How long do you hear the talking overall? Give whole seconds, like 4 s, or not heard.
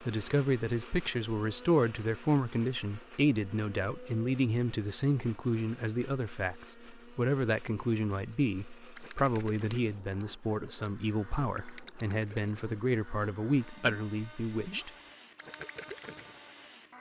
15 s.